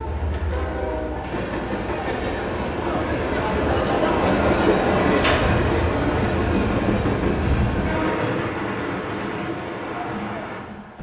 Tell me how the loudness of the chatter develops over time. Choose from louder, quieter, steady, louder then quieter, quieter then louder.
louder then quieter.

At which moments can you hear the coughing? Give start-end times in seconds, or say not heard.
not heard.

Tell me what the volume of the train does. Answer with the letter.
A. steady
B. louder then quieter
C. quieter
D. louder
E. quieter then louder
B.